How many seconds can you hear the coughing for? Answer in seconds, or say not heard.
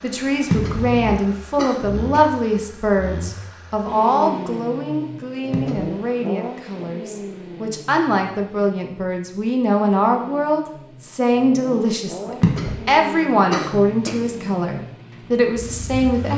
4 s.